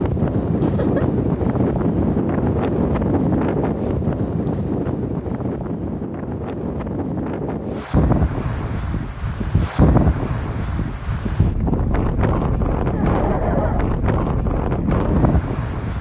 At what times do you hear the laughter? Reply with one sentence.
The laughter can be heard from 0.6 to 1.1 s and from 12.9 to 13.8 s.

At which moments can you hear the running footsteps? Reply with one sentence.
The running footsteps can't be heard in this clip.